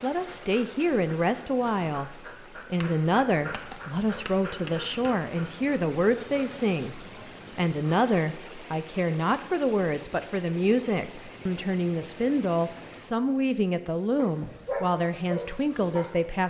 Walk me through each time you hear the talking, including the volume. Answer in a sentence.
The talking can be heard from 0.0 to 16.4 s, at a steady volume.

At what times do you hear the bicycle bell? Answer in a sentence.
You can hear the bicycle bell from 2.8 to 5.2 s.